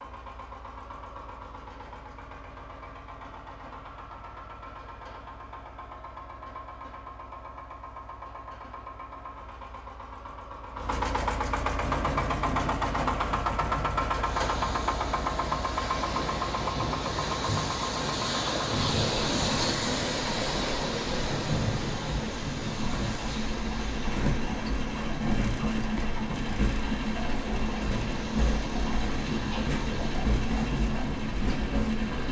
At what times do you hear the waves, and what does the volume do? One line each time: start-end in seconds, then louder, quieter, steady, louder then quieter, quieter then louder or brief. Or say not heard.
11.8-32.2 louder then quieter.